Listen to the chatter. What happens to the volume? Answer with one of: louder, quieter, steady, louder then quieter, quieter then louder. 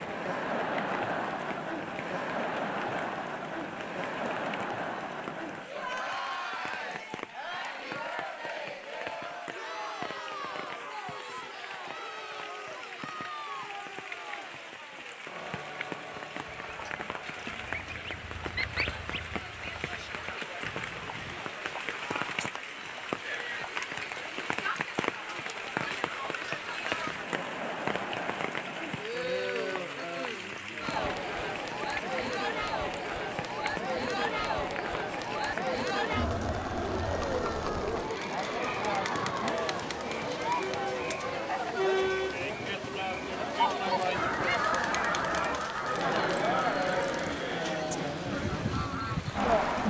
quieter then louder.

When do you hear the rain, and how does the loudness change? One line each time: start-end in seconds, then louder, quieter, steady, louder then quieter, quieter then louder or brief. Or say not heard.
0.0-49.8 louder then quieter.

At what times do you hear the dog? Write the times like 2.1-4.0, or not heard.
not heard.